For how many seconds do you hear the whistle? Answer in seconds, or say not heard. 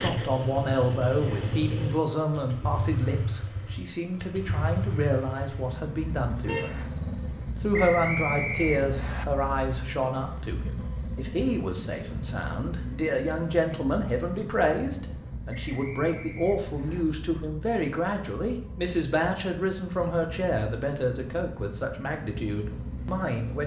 3 s.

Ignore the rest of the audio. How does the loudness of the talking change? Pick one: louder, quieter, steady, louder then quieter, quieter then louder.
steady.